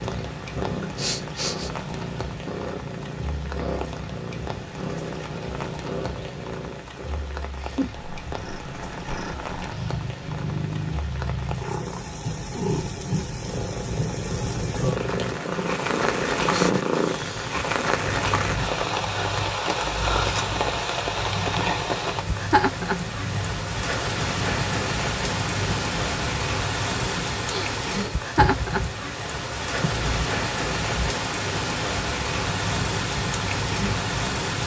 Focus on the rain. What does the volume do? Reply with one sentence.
The volume of the rain goes up.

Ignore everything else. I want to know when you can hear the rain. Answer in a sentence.
You can hear the rain from 0.0 to 34.6 s.